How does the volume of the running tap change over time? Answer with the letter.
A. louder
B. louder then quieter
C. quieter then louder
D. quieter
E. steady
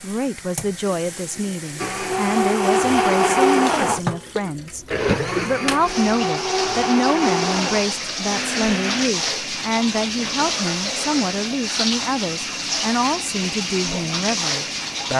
A.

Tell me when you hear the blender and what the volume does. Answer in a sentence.
You can hear the blender from 1.8 to 9.1 s, getting quieter.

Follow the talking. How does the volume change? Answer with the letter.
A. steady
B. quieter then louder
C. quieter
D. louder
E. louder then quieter
A.